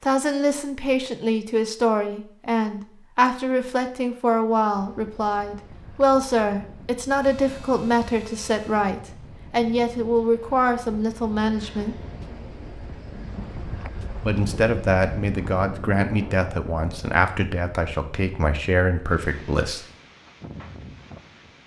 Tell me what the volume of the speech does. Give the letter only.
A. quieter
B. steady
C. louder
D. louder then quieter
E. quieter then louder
B.